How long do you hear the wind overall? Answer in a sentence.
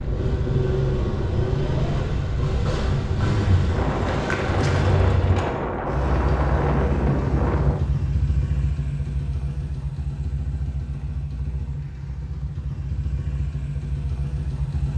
The wind can be heard for 8 seconds in total.